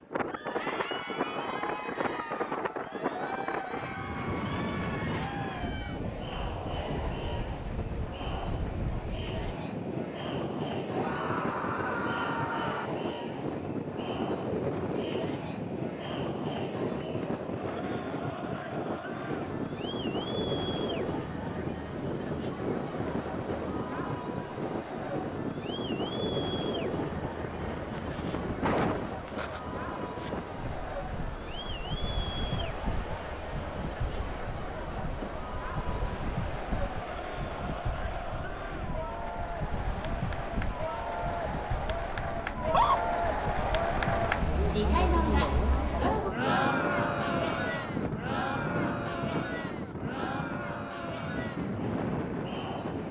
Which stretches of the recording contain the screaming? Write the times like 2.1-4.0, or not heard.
10.9-12.9, 42.5-43.0.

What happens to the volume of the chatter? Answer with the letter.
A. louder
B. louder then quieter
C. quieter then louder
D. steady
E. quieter
A.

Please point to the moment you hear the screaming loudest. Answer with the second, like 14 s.
43 s.